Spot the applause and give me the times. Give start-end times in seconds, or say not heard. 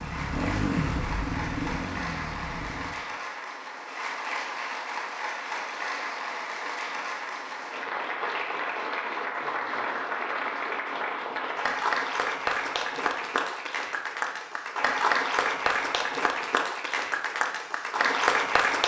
0.0-18.8.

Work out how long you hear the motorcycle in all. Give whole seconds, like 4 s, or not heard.
3 s.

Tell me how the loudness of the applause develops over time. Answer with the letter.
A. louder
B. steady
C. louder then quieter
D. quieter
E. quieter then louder
A.